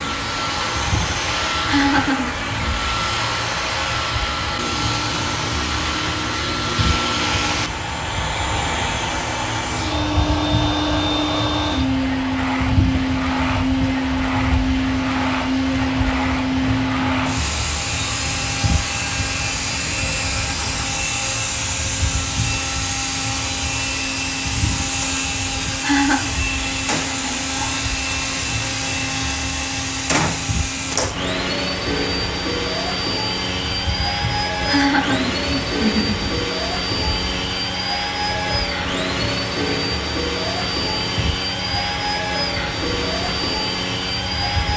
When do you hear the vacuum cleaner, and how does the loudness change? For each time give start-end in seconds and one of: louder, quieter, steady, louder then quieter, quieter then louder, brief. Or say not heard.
0.0-44.7 steady.